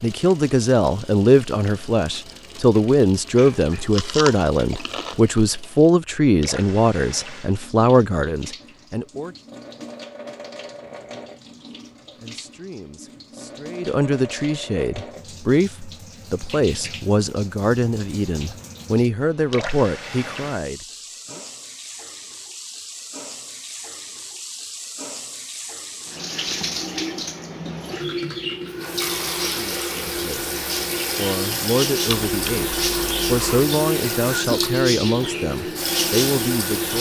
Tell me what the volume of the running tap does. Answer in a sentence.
The volume of the running tap goes up.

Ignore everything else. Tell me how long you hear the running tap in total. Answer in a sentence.
You can hear the running tap for 37 seconds altogether.